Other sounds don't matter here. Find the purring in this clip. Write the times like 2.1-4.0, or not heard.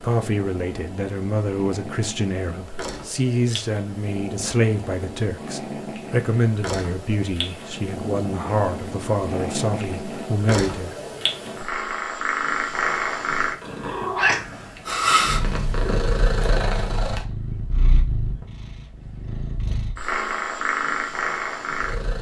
0.0-22.1.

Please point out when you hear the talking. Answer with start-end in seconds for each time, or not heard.
0.0-10.9.